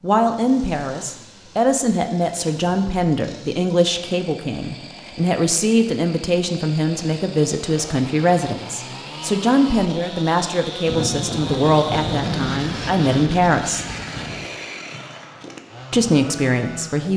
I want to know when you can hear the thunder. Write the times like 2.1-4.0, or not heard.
10.8-14.5.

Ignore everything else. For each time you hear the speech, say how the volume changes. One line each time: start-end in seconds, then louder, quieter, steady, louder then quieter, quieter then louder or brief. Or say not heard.
0.0-13.8 steady
15.9-17.1 brief.